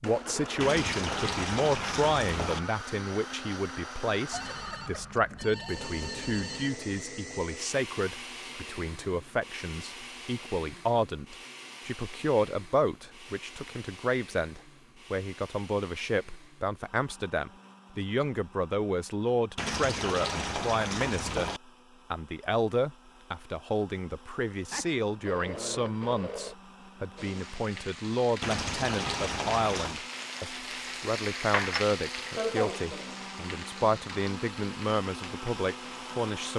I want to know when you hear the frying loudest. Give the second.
32 s.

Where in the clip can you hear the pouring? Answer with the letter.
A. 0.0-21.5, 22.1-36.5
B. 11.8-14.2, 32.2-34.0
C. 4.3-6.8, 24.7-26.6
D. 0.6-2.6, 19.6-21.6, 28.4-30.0
D.